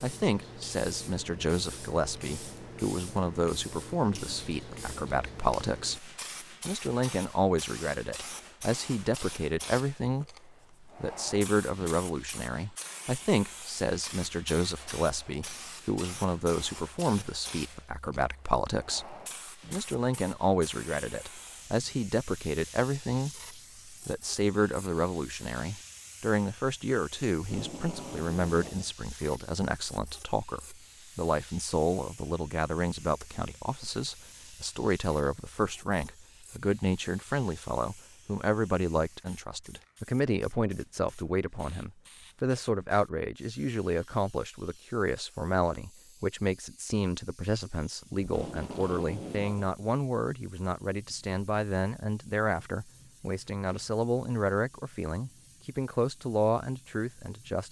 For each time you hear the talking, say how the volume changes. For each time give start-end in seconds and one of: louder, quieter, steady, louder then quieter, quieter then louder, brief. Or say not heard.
0.0-57.6 steady.